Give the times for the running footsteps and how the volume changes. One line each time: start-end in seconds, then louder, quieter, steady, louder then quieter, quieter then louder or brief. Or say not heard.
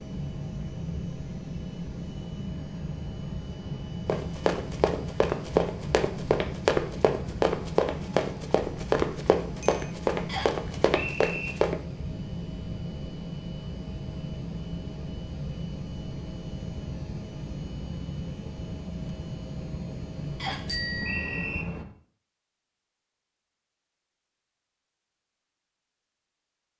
4.0-11.8 steady.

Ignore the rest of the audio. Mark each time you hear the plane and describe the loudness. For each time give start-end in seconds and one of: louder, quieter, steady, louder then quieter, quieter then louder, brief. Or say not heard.
0.0-21.9 steady.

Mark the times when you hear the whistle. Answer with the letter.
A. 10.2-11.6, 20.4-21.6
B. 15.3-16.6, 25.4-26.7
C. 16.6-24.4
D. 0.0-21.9
A.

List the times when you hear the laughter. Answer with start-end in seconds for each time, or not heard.
not heard.